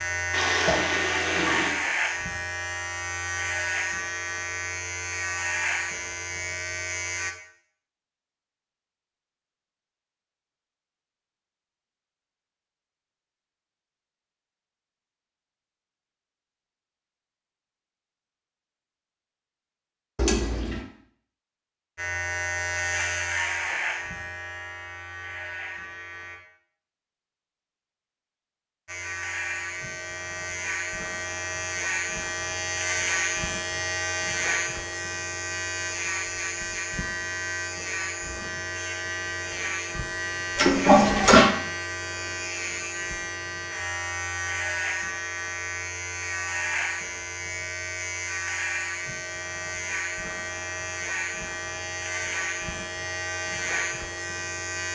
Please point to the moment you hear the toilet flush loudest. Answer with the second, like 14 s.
41 s.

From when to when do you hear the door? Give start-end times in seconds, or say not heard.
not heard.